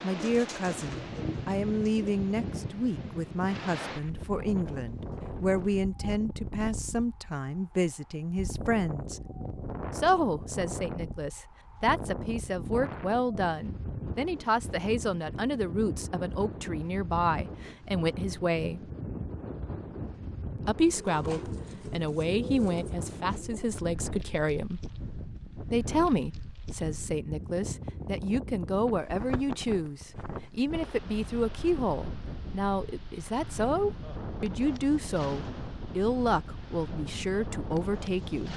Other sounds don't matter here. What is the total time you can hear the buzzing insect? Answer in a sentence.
The buzzing insect can't be heard in this clip.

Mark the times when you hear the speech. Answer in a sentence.
You can hear the speech from 0.0 to 9.2 s, from 9.9 to 18.9 s, from 20.6 to 24.8 s and from 25.7 to 38.5 s.